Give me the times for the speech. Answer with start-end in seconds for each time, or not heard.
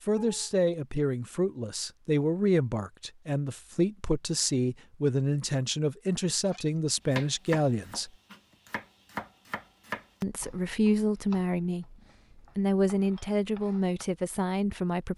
0.1-8.1, 10.2-11.9, 12.6-15.1.